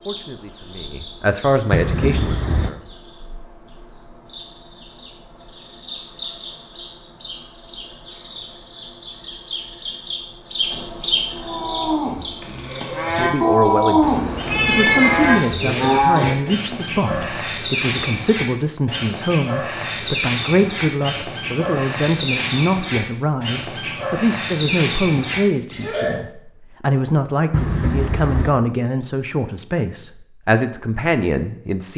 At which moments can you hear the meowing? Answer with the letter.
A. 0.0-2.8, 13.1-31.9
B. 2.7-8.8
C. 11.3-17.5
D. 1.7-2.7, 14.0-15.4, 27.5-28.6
D.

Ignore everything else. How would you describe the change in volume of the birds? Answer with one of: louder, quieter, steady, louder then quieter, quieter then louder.
louder.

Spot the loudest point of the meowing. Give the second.
15 s.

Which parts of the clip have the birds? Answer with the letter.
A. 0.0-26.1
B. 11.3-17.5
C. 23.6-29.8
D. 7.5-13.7
A.